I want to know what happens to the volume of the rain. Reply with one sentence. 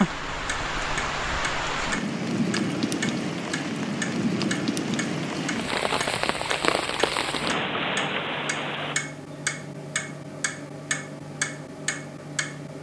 The volume of the rain stays about the same.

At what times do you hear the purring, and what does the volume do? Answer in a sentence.
The purring can't be heard in this clip.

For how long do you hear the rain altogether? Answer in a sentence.
The rain can be heard for 9 seconds in total.